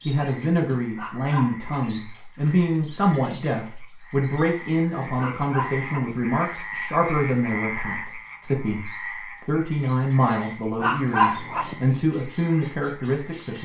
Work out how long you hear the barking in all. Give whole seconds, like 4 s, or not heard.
3 s.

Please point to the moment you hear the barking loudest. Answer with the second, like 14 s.
11 s.